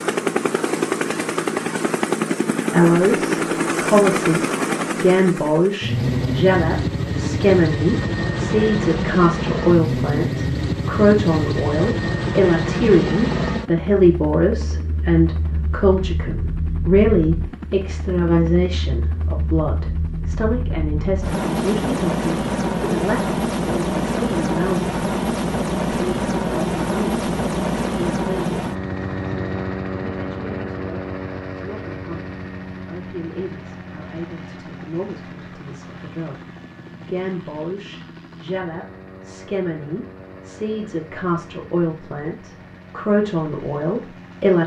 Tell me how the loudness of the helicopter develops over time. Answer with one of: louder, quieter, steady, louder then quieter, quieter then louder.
quieter.